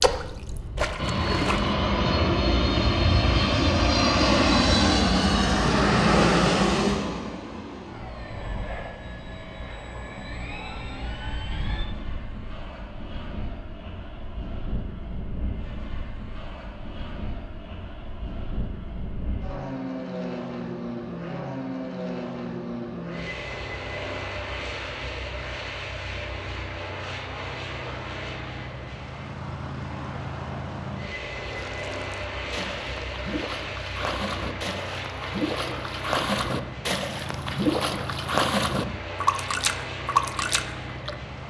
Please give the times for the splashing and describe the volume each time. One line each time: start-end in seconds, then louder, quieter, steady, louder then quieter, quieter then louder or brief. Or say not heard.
0.0-1.8 brief
31.4-41.1 louder.